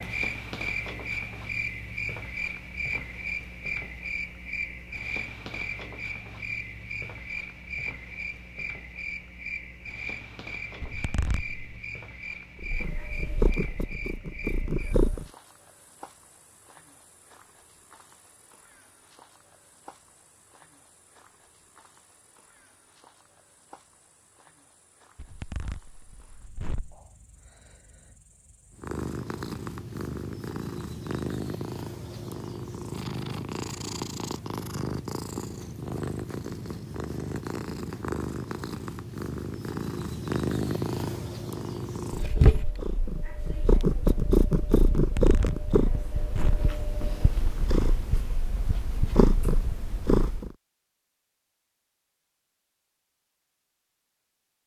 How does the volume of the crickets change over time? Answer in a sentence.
The loudness of the crickets goes down.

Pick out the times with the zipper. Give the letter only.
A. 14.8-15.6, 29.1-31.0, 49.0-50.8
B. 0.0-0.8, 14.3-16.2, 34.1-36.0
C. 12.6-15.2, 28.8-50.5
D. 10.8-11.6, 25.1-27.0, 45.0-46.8
D.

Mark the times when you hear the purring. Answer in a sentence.
You can hear the purring from 12.6 to 15.2 s and from 28.8 to 50.5 s.